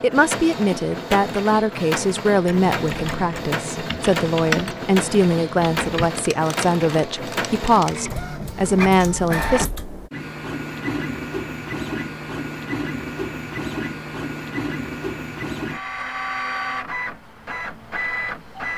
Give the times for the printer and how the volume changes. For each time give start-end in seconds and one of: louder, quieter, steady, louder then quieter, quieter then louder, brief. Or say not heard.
0.0-18.7 steady.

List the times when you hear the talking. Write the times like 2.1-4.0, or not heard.
0.0-9.7.